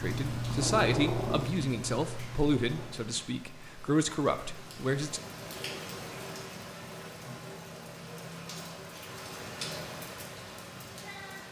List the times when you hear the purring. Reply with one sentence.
You can hear the purring from 0.0 to 3.0 s.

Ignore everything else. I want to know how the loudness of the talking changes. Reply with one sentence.
The loudness of the talking goes down, then up.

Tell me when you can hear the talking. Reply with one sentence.
You can hear the talking from 0.0 to 5.2 s.